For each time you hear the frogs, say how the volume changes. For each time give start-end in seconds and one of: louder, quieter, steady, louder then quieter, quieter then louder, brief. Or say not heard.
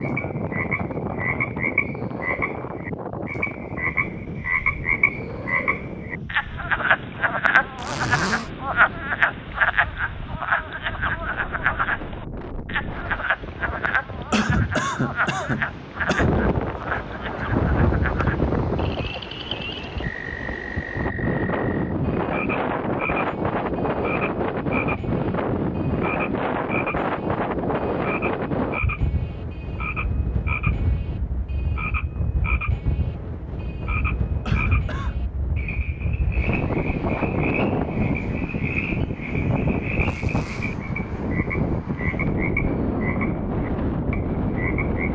0.0-45.1 quieter.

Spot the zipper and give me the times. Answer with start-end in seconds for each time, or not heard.
7.8-8.5, 40.0-40.8.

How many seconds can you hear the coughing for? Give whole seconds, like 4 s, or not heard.
3 s.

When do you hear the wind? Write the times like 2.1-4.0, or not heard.
0.0-45.1.